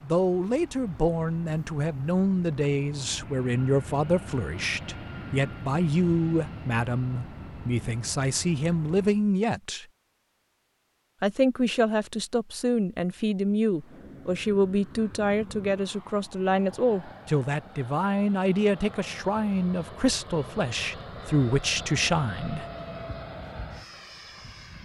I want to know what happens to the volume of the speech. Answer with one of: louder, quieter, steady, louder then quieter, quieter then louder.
steady.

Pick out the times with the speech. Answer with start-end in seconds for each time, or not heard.
0.0-9.8, 11.2-22.6.